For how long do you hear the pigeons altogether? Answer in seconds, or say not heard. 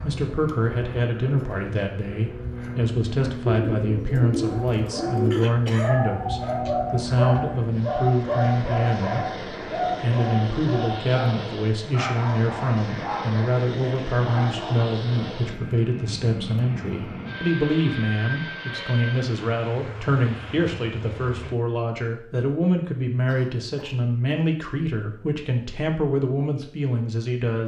2 s.